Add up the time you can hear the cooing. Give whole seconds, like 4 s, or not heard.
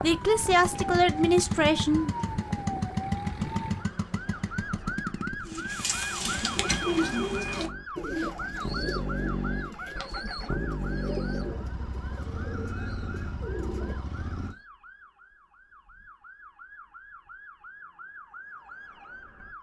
9 s.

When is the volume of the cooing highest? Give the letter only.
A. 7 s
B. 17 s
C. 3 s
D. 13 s
A.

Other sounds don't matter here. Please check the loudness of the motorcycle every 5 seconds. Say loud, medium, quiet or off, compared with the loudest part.
loud, loud, loud, off.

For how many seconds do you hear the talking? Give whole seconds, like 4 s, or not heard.
2 s.